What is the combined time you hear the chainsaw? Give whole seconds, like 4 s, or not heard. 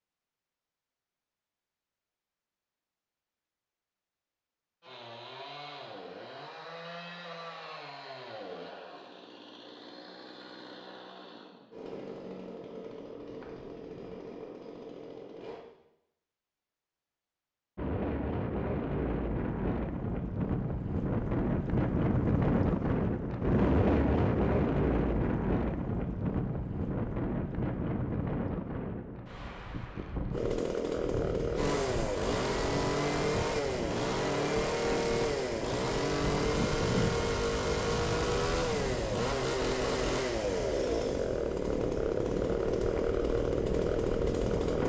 25 s.